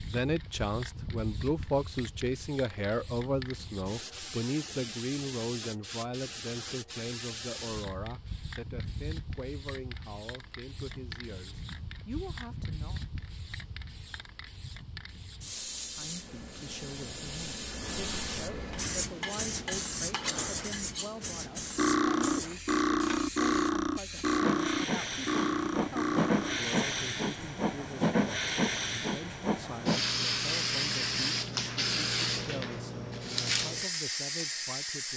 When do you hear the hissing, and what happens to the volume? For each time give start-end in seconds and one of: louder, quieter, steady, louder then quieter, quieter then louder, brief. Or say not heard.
0.0-35.1 louder.